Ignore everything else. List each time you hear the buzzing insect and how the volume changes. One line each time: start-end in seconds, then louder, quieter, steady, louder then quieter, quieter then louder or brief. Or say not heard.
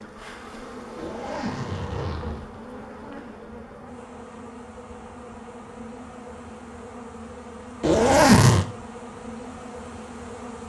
0.0-10.6 steady.